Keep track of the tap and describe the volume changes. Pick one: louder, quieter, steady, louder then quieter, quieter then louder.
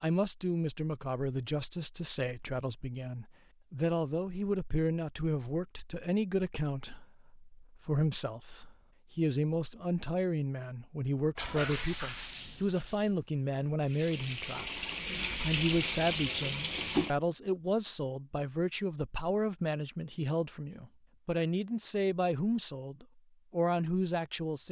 quieter then louder.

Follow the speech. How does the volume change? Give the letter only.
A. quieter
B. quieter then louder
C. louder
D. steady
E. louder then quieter
D.